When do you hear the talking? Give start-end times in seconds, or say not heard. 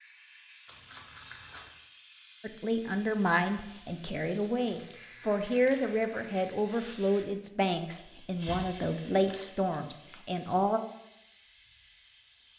2.4-10.8.